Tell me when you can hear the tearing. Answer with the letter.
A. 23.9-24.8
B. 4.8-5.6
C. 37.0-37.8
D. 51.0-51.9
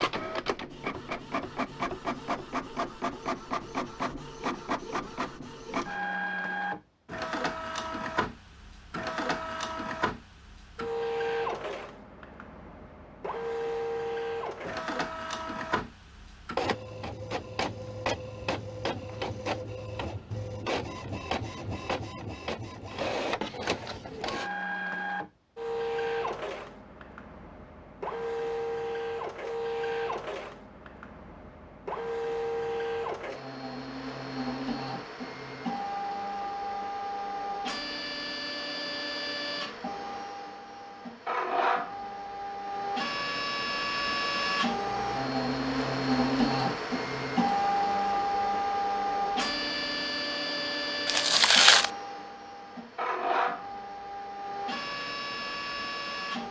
D.